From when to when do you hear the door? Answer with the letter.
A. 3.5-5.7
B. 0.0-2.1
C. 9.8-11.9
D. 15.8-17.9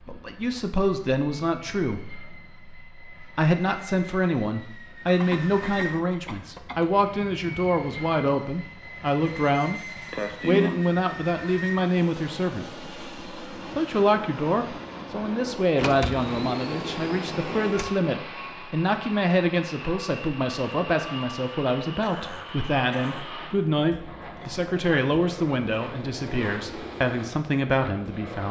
D.